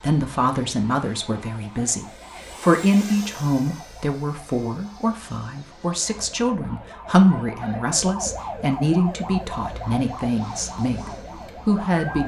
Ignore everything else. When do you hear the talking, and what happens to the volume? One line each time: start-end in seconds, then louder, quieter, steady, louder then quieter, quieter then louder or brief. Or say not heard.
0.0-12.2 steady.